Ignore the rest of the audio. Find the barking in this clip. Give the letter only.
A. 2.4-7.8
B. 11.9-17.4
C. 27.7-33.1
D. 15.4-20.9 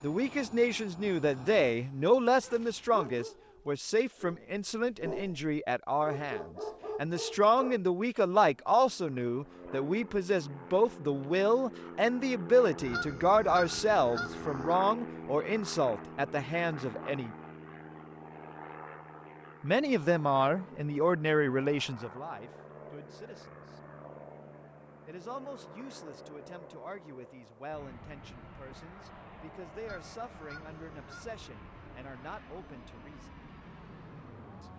A.